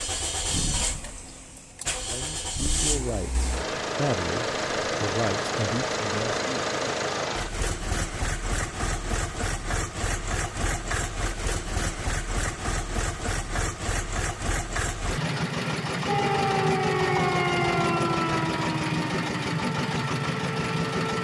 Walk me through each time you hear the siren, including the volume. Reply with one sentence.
You can hear the siren from 16.1 to 21.1 s, getting quieter.